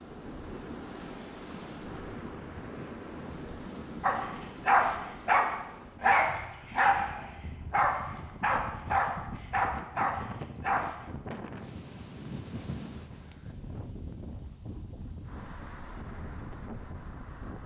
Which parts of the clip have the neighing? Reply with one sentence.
You can't hear the neighing here.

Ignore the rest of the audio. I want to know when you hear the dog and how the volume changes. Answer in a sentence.
The dog can be heard from 4.0 to 11.1 s, getting quieter.